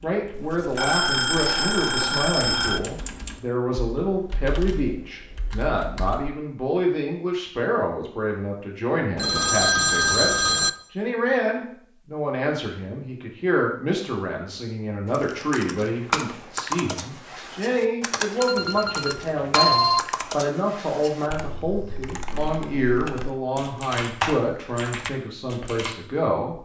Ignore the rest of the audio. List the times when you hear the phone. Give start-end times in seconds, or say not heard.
0.3-2.8, 9.2-10.7, 18.4-20.0.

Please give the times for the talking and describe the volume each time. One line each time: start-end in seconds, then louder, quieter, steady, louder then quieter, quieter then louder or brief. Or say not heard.
0.0-26.5 steady.